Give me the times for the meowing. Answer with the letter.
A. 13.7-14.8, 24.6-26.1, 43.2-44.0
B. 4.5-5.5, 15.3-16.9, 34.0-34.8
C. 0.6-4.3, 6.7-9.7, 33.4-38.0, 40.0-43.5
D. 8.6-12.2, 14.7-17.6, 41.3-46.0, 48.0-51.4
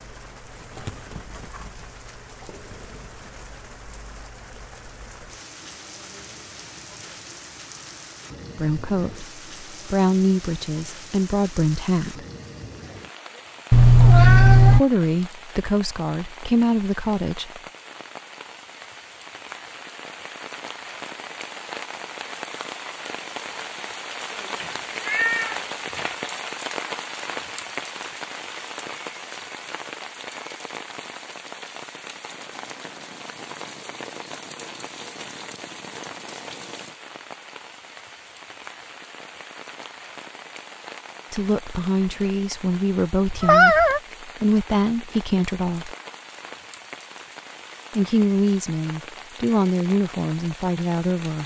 A.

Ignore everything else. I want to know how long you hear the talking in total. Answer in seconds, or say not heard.
15 s.